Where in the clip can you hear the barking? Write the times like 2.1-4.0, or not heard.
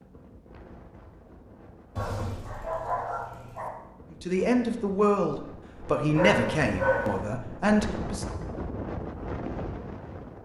1.9-3.7, 6.1-7.2.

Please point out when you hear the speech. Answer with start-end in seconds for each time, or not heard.
4.1-8.2.